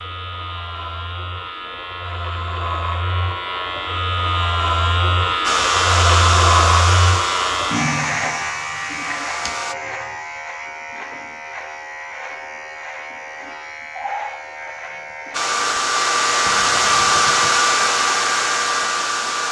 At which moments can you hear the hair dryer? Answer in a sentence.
You can hear the hair dryer from 5.4 to 9.8 s and from 15.3 to 19.4 s.